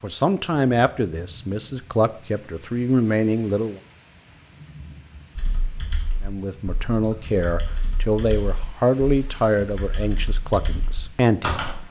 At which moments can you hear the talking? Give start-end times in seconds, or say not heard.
0.0-3.8, 6.2-11.6.